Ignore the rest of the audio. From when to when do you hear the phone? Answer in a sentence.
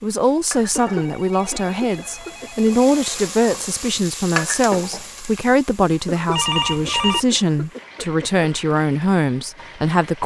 The phone can be heard from 0.6 to 3.1 s and from 6.3 to 7.2 s.